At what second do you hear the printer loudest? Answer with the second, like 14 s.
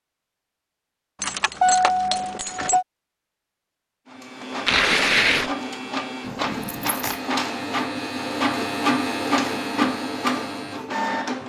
9 s.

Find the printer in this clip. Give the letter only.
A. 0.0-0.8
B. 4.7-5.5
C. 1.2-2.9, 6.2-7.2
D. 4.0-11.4
D.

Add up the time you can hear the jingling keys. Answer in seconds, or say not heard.
3 s.